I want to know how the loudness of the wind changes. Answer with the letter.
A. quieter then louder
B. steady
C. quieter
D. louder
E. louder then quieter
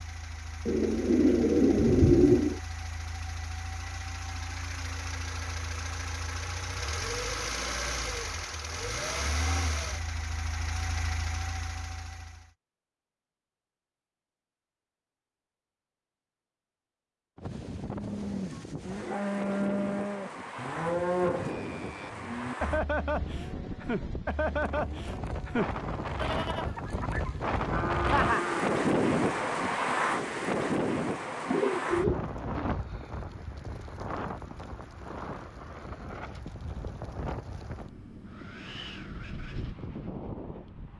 E.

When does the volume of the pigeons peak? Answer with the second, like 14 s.
2 s.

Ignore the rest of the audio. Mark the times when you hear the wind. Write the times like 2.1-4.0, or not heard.
17.4-40.9.